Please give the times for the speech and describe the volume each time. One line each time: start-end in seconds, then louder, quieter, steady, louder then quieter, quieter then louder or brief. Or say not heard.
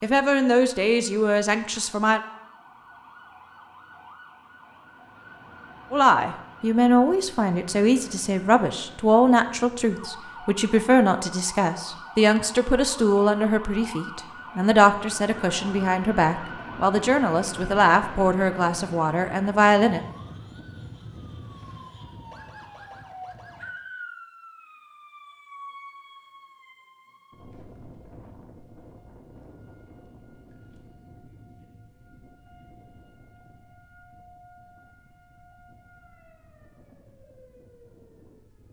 0.0-2.2 brief
5.9-20.1 steady.